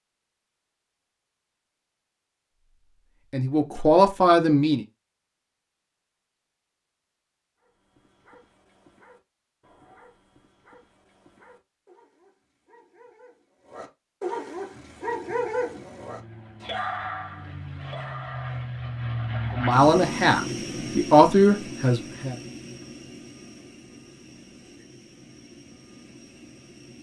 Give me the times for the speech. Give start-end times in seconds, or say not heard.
3.3-4.8, 19.6-22.4.